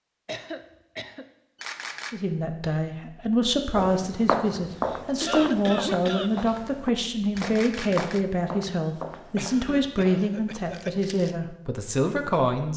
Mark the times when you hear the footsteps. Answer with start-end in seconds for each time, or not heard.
3.8-11.4.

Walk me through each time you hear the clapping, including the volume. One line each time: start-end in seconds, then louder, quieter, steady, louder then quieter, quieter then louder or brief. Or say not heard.
not heard.